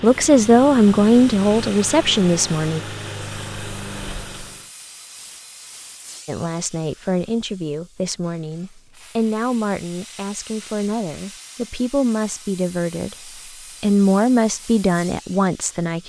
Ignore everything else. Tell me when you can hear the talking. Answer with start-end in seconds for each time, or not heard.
0.0-2.8, 6.2-16.0.